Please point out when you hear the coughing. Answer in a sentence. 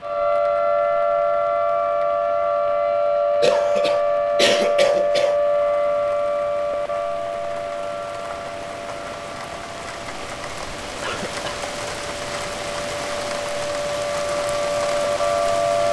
The coughing can be heard from 3.4 to 5.3 s and from 11.0 to 11.6 s.